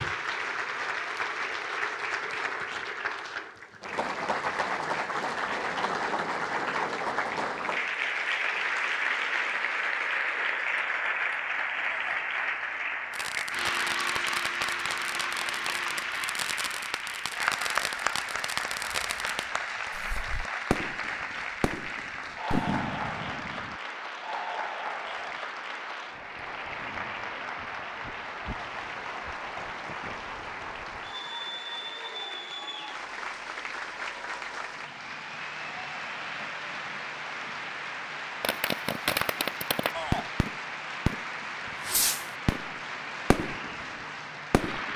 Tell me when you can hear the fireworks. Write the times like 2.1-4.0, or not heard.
13.1-23.8, 38.4-44.9.